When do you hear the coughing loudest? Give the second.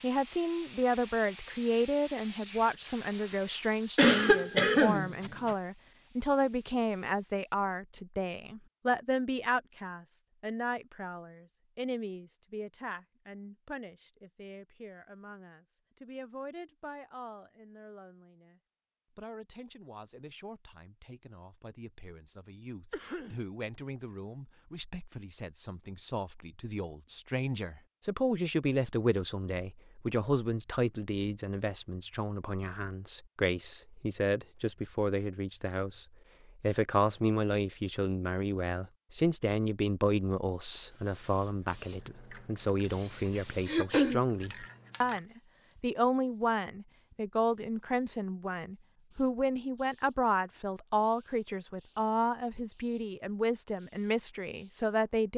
4 s.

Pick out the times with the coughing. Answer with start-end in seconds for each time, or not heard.
4.0-5.5, 22.9-23.4, 43.6-44.2.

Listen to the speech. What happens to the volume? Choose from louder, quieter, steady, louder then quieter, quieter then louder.
quieter then louder.